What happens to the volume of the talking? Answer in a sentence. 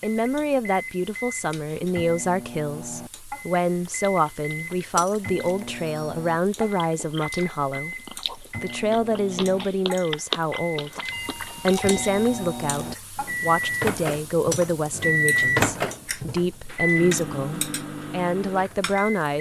The loudness of the talking stays about the same.